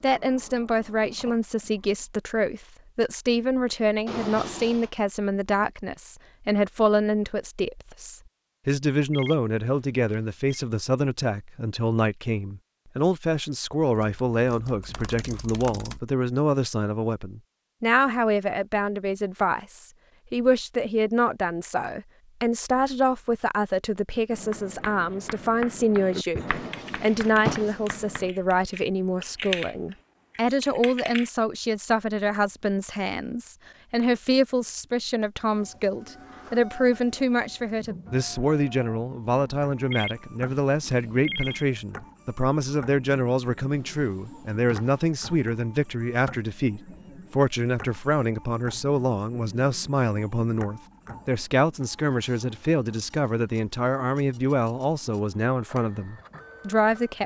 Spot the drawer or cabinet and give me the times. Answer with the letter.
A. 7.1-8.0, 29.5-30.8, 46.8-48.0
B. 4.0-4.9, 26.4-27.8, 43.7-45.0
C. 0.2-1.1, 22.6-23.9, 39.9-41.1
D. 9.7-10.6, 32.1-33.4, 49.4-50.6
B.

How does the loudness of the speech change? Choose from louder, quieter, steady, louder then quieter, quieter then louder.
steady.